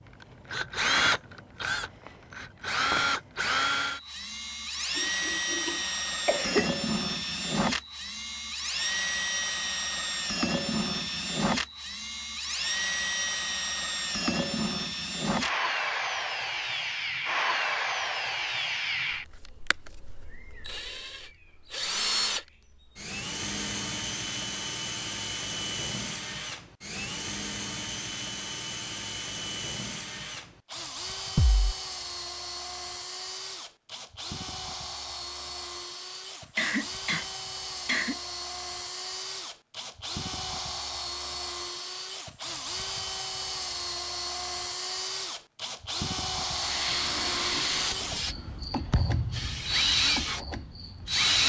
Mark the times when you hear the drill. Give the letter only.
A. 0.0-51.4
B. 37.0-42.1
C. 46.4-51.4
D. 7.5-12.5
A.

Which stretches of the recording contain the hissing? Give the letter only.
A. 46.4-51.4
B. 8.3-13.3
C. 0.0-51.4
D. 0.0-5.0
A.